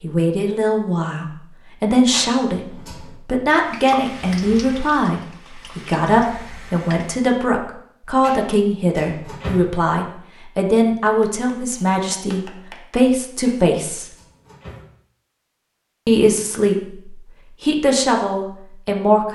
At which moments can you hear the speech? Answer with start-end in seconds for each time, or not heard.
0.0-14.1, 16.1-19.3.